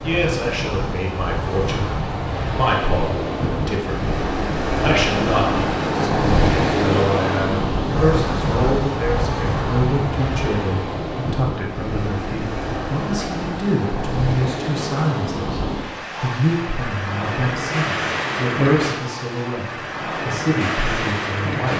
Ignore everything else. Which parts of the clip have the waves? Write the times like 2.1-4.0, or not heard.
0.0-21.7.